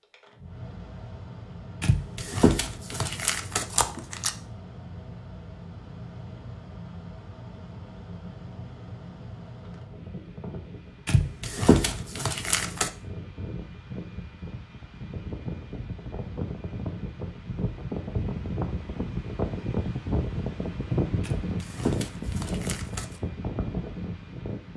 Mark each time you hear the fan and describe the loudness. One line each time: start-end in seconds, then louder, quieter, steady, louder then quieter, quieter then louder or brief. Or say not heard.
0.0-24.7 louder.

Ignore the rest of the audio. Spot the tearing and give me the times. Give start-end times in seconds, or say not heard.
1.8-4.3, 11.1-12.9, 21.2-23.1.